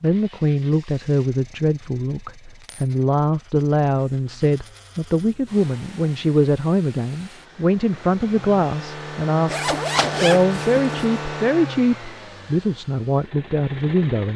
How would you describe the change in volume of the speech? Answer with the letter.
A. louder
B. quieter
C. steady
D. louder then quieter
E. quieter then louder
C.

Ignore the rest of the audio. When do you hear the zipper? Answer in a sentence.
The zipper can be heard from 9.4 to 11.1 s.